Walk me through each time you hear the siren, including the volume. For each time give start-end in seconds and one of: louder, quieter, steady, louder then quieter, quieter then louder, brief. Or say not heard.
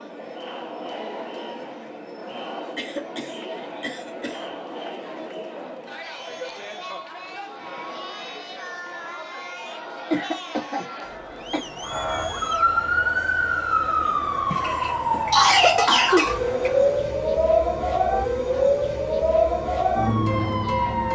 11.8-21.1 steady.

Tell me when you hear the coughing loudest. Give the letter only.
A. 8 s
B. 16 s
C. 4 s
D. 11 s
B.